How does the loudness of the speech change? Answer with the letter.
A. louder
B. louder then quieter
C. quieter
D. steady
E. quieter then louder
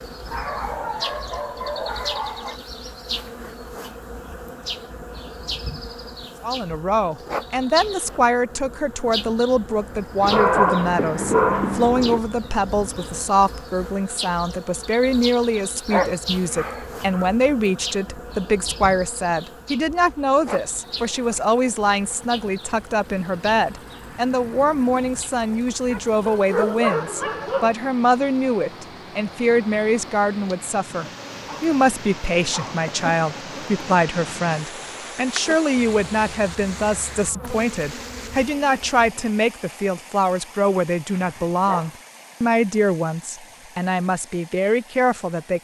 D.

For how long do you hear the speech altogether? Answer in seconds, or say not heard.
39 s.